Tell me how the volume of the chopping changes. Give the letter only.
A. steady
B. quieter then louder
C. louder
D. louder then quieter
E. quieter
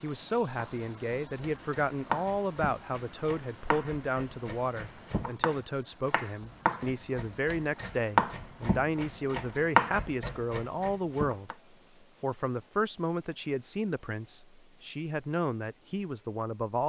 B.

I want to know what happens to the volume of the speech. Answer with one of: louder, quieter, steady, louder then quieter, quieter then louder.
steady.